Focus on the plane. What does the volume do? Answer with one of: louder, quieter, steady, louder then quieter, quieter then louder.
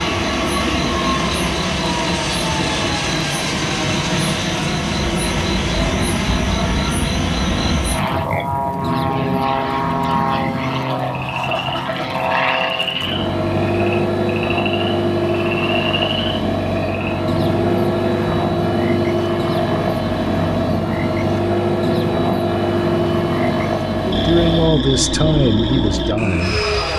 steady.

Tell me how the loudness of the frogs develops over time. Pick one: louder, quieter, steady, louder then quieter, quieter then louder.
steady.